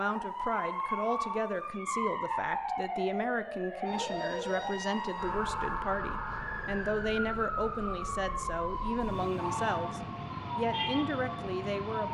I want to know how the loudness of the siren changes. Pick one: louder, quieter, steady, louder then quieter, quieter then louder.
steady.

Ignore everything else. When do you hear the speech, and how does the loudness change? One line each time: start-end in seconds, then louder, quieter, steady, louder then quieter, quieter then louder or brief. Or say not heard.
0.0-12.0 steady.